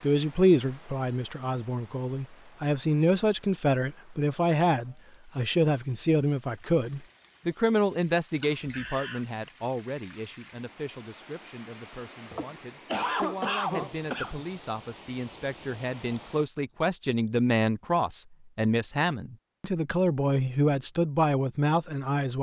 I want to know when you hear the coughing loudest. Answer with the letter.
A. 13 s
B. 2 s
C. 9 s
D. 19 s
A.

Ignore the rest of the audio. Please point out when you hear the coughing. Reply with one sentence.
You can hear the coughing from 8.4 to 9.5 s and from 12.3 to 14.4 s.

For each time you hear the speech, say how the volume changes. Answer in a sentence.
You can hear the speech from 0.0 to 22.3 s, getting quieter then louder.